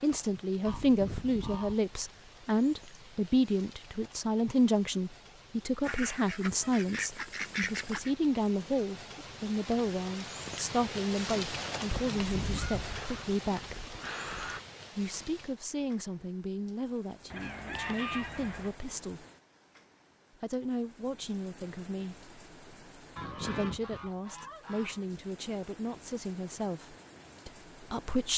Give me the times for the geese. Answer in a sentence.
The geese can be heard from 0.7 to 1.8 s, from 5.8 to 8.1 s, from 11.9 to 14.6 s, from 17.3 to 18.8 s and from 23.1 to 25.1 s.